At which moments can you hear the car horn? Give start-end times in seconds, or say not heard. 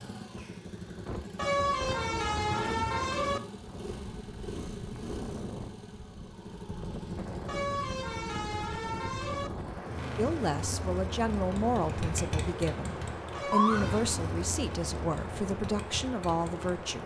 1.4-3.4, 7.5-9.5, 13.3-14.1.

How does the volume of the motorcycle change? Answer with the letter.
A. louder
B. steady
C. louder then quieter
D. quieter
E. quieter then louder
A.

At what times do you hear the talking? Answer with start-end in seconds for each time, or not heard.
10.2-17.0.